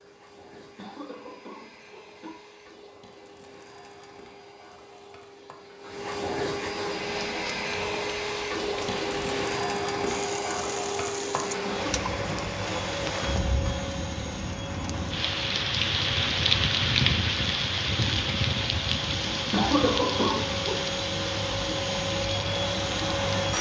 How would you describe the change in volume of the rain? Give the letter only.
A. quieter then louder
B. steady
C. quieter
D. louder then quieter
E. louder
D.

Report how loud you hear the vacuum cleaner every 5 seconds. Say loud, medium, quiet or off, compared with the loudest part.
quiet, loud, loud, medium, loud.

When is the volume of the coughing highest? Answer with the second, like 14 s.
20 s.